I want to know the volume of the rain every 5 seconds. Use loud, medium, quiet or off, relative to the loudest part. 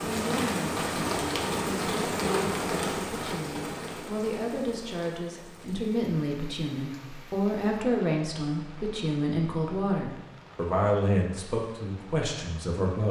loud, quiet, quiet.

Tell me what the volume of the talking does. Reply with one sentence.
The volume of the talking goes up.